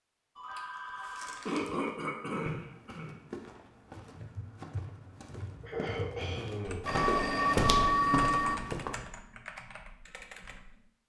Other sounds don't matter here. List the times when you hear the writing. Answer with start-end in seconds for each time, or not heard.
not heard.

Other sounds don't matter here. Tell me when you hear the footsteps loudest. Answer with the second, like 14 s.
8 s.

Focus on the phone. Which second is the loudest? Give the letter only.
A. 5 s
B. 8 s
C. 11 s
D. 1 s
B.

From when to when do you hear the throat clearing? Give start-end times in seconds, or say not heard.
1.4-3.1, 5.6-6.9.